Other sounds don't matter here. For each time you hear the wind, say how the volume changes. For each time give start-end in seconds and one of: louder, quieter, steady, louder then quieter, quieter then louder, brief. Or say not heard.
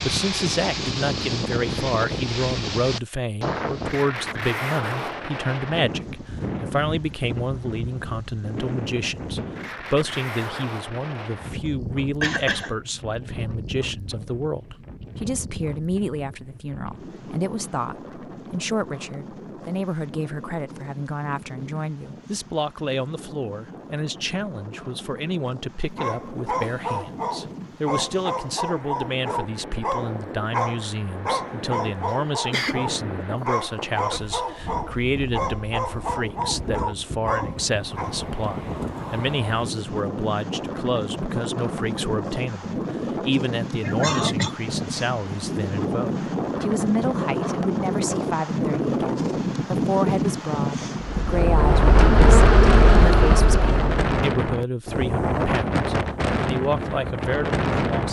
0.0-58.0 quieter then louder.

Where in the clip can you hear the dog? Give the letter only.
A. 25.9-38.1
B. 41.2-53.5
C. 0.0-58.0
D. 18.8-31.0
A.